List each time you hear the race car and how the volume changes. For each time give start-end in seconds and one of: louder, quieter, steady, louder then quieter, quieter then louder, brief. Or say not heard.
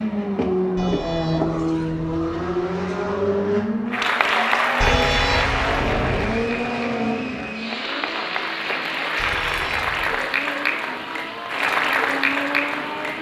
0.0-13.1 quieter.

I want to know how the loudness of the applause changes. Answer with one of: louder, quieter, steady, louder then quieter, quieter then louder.
quieter then louder.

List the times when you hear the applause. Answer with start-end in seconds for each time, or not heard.
3.9-13.1.